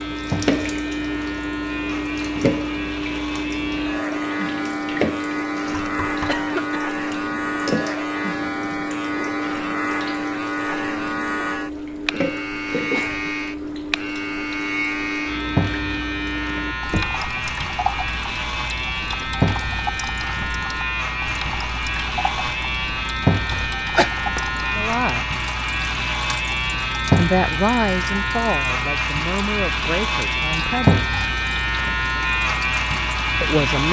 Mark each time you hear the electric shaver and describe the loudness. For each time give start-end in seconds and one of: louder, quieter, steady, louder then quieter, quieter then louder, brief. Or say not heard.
0.0-33.8 louder.